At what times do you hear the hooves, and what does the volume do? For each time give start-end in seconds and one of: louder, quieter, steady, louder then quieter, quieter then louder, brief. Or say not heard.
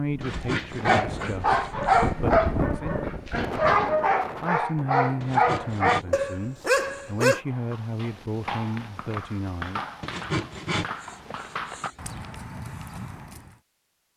7.5-13.6 steady.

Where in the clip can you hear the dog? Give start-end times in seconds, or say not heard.
0.2-7.4.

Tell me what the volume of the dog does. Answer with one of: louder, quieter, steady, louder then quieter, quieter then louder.
steady.